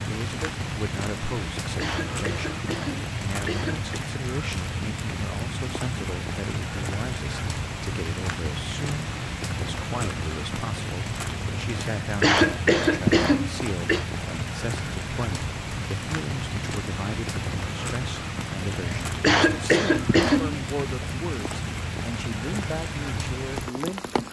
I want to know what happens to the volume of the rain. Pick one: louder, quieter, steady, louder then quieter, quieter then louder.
steady.